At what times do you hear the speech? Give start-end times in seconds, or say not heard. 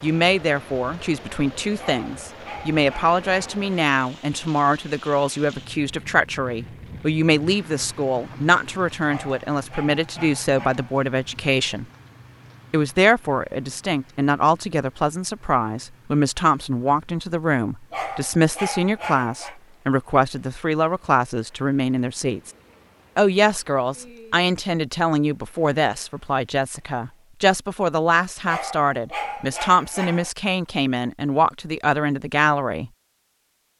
0.0-11.8, 12.7-22.5, 23.1-32.9.